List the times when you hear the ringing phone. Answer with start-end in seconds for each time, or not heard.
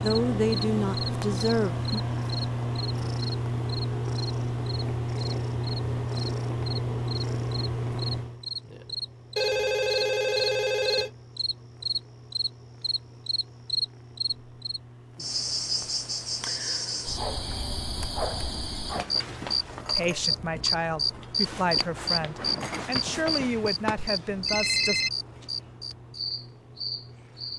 9.3-11.1, 23.9-25.1.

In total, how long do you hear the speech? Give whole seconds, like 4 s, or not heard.
7 s.